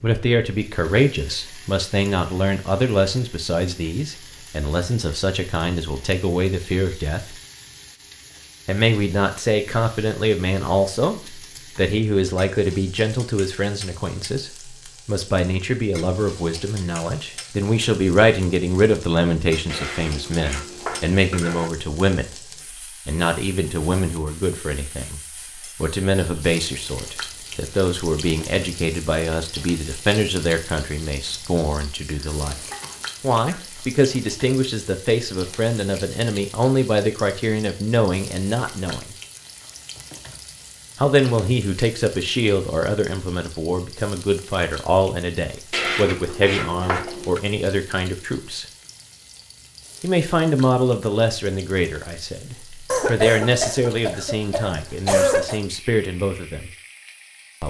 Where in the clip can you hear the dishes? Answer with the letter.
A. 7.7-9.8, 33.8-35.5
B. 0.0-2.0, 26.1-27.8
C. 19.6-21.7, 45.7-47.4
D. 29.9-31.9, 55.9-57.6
C.